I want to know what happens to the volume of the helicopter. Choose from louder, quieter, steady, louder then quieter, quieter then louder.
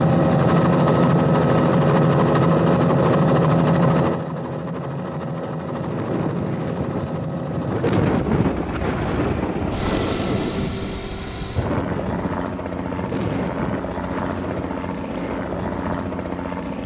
quieter.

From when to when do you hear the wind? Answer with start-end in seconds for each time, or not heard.
5.7-16.8.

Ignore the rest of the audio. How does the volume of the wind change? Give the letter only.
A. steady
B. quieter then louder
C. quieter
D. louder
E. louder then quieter
C.